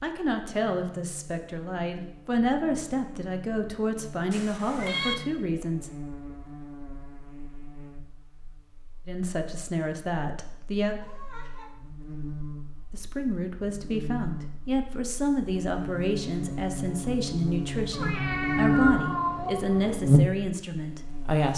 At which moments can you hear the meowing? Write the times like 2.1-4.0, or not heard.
4.3-5.2, 11.0-11.8, 17.9-19.9.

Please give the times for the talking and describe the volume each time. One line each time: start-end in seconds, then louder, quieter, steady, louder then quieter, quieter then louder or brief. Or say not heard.
0.0-5.9 steady
9.1-11.0 brief
12.9-21.5 steady.